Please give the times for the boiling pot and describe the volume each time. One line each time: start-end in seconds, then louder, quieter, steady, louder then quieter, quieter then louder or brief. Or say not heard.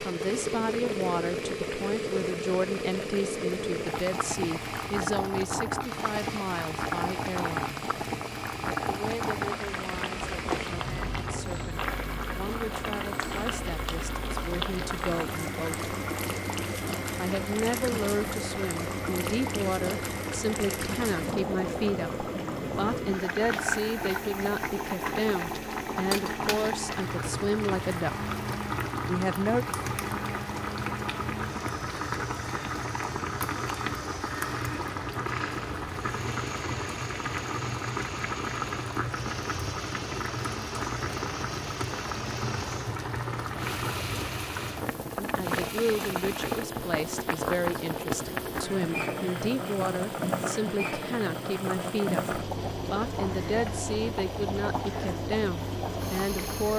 0.0-56.7 steady.